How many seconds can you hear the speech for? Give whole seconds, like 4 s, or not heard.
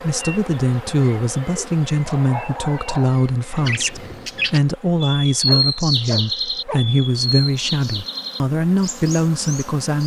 10 s.